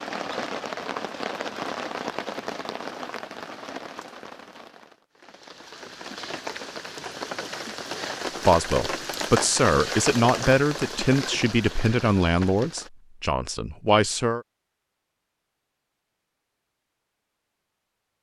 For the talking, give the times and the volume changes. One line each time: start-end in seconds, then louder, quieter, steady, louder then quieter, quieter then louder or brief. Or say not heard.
8.4-14.4 steady.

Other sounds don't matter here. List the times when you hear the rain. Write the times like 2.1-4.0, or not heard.
0.0-12.9.